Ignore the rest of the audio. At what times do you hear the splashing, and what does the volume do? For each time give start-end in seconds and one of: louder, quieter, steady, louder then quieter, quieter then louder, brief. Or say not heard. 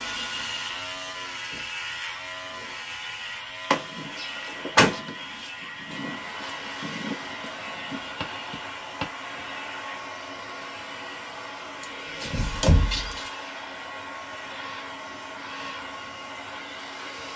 not heard.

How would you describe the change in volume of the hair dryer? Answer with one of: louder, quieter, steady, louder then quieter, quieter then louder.
steady.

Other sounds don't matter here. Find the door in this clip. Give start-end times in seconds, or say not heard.
3.7-5.0, 11.8-13.3.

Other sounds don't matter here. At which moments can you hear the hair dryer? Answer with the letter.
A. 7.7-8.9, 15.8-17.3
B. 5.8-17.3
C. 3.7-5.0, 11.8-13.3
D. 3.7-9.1
B.